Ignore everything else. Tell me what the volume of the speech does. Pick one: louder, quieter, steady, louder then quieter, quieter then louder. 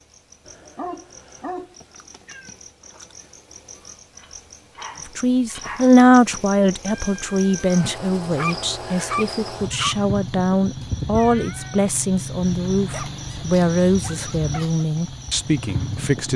quieter.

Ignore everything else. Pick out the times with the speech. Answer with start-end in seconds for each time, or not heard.
5.2-16.3.